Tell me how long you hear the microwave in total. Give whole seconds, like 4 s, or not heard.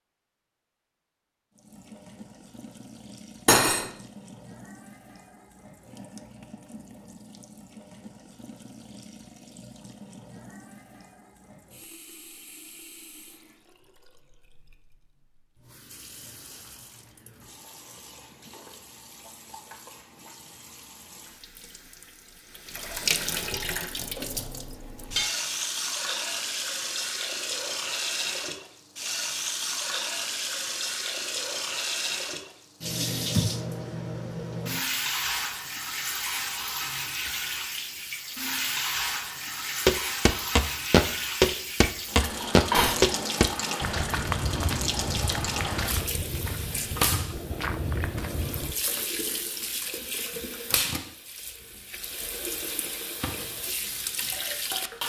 not heard.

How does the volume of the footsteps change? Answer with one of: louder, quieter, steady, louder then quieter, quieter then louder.
quieter.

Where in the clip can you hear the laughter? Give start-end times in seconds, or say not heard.
not heard.